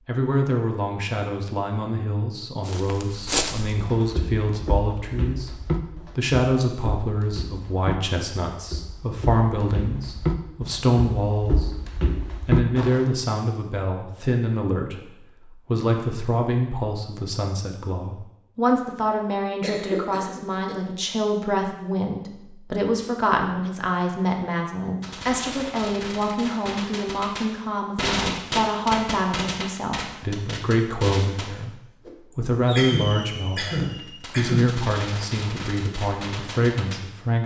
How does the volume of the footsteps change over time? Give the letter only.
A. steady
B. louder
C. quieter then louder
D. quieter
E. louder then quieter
C.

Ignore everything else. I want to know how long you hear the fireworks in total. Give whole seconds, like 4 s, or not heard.
12 s.